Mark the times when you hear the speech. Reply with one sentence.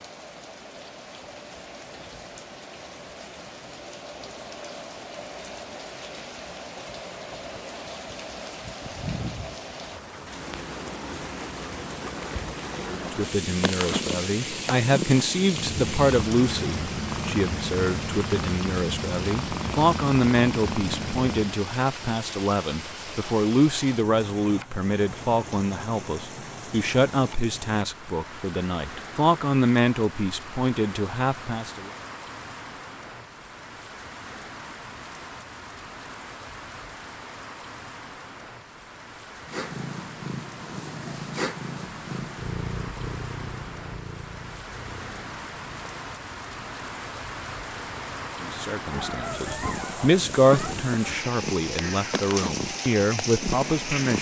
You can hear the speech from 12.8 to 31.9 s and from 48.4 to 54.1 s.